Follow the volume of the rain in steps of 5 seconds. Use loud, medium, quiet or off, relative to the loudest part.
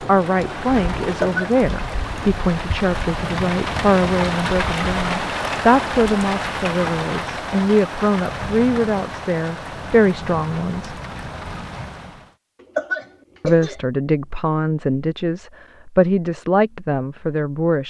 loud, loud, medium, off.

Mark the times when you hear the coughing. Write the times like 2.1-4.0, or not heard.
1.1-1.9, 12.6-13.8.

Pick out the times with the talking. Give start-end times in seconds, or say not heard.
0.1-10.9, 13.4-17.8.